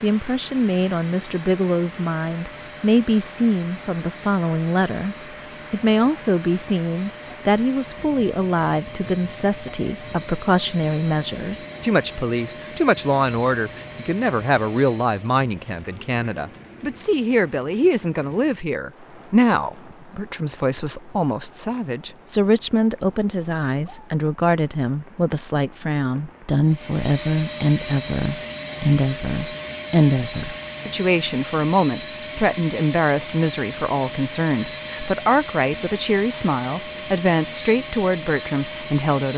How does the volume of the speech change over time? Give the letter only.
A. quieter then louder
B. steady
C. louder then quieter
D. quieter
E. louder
B.